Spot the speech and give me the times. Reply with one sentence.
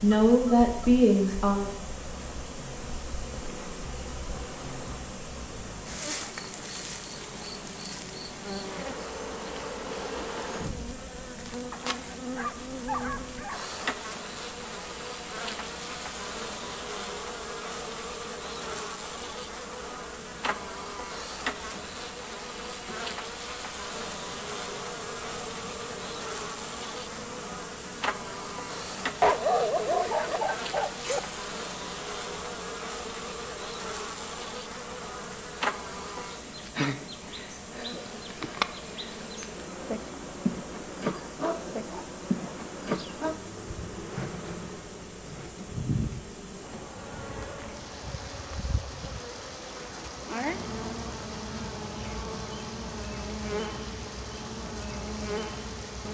The speech can be heard from 0.0 to 1.7 s.